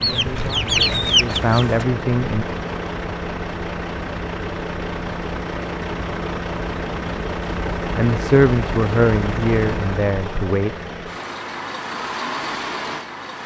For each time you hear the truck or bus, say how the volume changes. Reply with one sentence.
You can hear the truck or bus from 0.0 to 13.4 s, at a steady volume.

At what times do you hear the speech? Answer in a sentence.
You can hear the speech from 0.0 to 2.5 s and from 8.0 to 10.8 s.